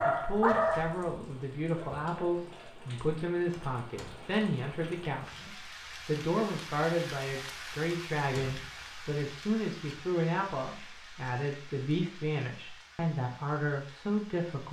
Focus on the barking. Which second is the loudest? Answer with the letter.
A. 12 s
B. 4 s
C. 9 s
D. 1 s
D.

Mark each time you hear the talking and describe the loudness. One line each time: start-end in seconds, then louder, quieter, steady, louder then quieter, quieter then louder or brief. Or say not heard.
0.1-14.6 steady.